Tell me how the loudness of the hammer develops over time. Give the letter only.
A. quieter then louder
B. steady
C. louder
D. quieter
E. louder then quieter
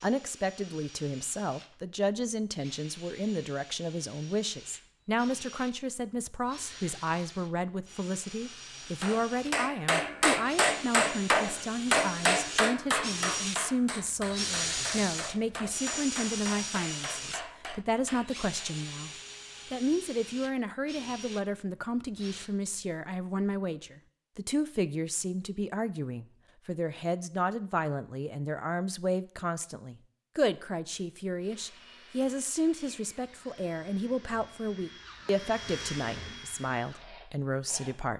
D.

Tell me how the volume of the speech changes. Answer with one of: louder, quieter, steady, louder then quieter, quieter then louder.
steady.